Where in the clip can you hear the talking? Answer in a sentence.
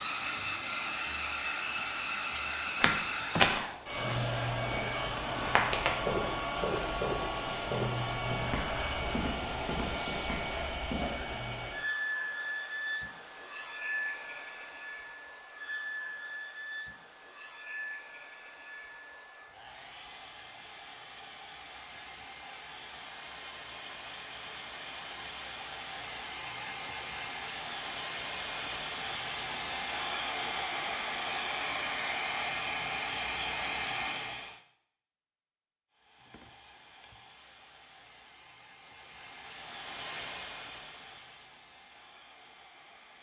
The talking can't be heard in this clip.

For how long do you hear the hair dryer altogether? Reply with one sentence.
The hair dryer can be heard for 42 seconds in total.